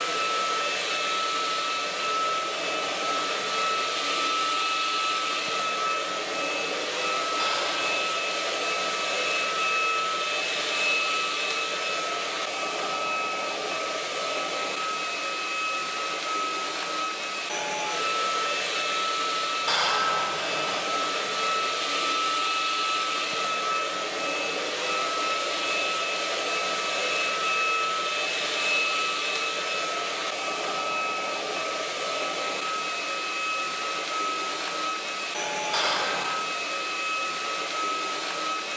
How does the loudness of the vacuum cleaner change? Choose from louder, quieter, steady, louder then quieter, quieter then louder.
steady.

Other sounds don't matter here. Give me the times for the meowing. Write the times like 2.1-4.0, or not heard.
7.3-8.1, 19.6-20.8, 35.7-36.4.